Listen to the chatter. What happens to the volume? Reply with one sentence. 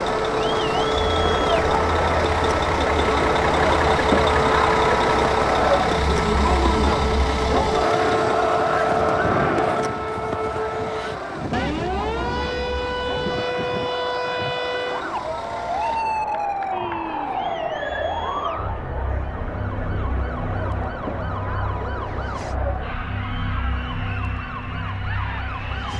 The loudness of the chatter goes down.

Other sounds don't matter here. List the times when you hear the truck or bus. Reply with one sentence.
The truck or bus can be heard from 0.0 to 16.1 s.